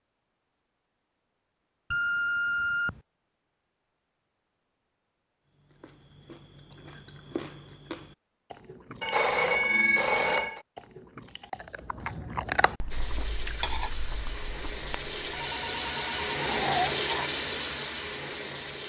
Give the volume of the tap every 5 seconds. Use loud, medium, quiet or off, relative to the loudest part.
off, off, medium, loud.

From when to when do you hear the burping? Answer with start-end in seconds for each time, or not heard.
16.4-17.3.